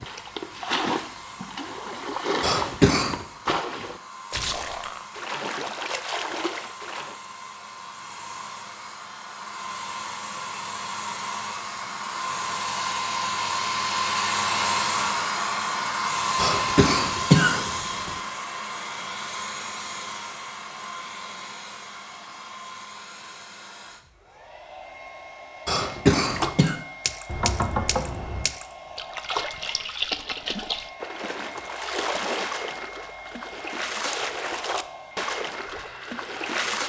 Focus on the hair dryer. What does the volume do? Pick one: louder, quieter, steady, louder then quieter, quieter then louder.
louder then quieter.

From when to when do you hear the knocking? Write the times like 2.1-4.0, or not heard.
27.2-28.5.